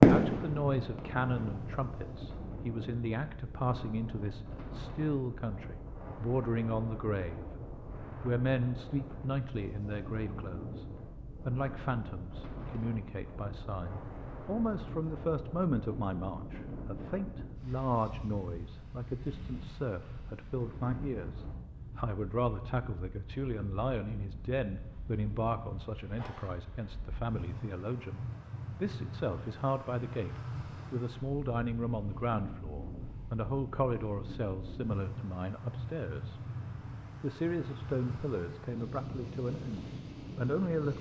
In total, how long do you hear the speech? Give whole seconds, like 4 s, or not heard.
40 s.